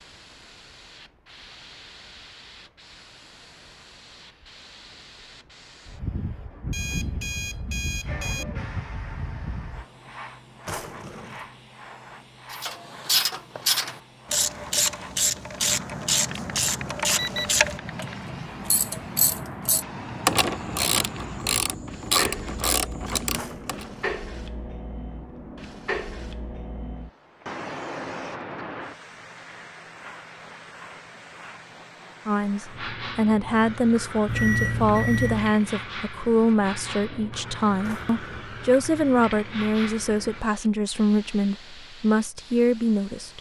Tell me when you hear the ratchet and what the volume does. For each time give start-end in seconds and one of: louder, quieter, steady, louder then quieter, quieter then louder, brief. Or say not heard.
12.5-23.9 steady.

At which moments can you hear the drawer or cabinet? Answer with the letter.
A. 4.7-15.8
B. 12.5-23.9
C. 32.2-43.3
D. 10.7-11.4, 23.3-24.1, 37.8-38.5
D.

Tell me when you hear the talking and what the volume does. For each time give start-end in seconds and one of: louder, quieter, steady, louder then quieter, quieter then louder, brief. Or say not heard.
32.2-43.3 steady.